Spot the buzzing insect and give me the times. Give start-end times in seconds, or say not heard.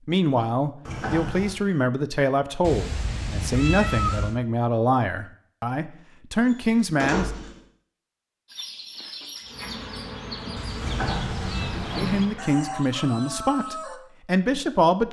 9.4-12.8.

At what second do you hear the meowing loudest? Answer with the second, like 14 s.
4 s.